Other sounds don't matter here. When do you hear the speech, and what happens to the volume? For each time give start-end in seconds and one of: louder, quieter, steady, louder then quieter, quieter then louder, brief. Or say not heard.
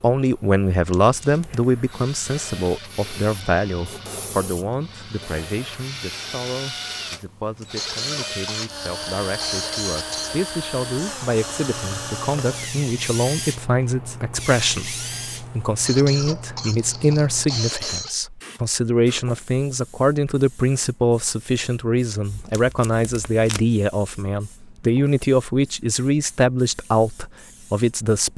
0.0-28.3 quieter then louder.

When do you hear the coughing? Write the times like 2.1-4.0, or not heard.
7.8-10.3, 15.8-18.1.